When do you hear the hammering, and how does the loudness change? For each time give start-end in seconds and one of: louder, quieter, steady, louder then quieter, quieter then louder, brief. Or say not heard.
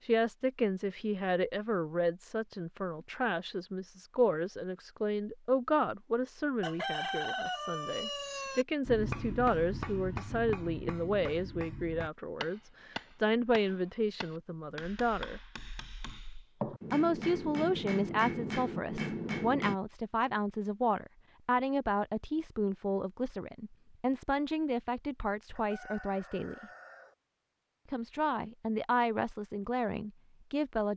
8.8-19.8 quieter then louder.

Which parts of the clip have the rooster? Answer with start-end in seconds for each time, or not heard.
6.6-8.7, 25.6-27.1.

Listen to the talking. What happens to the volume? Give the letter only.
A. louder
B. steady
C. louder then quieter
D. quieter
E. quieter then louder
B.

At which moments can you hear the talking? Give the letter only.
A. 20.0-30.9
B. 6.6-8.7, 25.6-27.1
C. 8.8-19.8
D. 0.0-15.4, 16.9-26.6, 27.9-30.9
D.